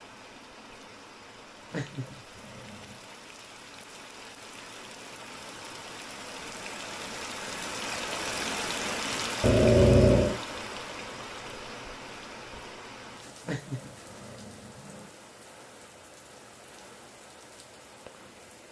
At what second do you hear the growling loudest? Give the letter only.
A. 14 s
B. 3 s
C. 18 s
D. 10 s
D.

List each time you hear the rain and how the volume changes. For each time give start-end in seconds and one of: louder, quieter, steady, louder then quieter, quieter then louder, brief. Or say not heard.
0.0-18.6 louder then quieter.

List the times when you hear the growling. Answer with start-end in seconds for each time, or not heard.
1.7-3.0, 9.4-10.4, 13.4-15.1.